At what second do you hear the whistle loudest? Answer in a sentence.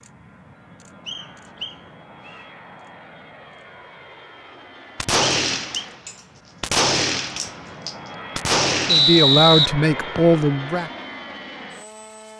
The volume of the whistle peaks at 9 seconds.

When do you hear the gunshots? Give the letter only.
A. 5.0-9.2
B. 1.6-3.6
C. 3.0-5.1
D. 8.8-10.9
A.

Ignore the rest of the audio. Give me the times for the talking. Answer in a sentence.
The talking can be heard from 8.8 to 10.9 s.